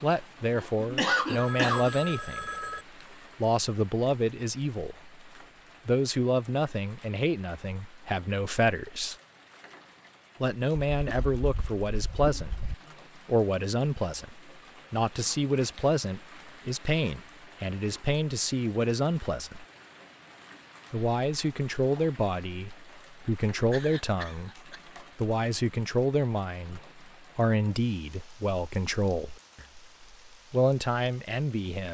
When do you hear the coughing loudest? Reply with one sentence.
The loudest moment of the coughing is at 1 second.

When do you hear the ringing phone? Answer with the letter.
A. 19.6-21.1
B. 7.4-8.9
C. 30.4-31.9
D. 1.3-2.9
D.